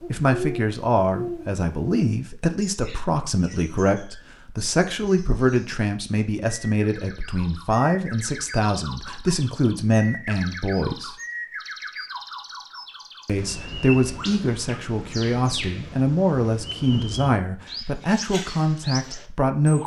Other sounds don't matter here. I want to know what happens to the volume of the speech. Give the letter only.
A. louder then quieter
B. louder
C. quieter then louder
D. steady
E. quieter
D.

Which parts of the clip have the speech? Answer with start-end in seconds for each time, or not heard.
0.1-11.2, 13.2-19.8.